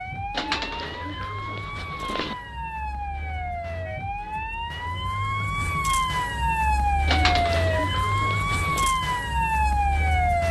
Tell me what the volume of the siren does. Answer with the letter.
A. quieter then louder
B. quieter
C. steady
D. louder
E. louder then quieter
D.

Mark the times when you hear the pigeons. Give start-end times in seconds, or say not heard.
0.3-2.4, 7.0-8.9.